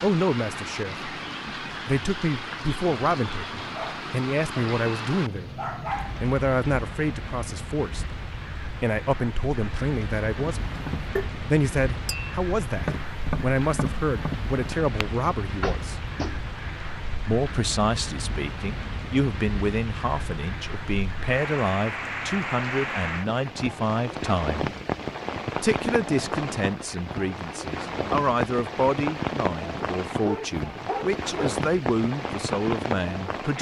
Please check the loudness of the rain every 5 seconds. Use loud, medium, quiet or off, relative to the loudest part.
loud, medium, medium, medium, loud, loud, loud.